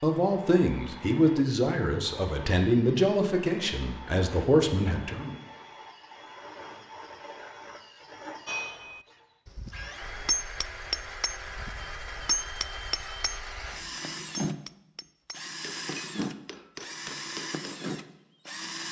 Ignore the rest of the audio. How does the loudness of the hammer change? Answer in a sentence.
The loudness of the hammer goes up, then down.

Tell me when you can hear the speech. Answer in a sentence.
You can hear the speech from 0.0 to 5.3 s.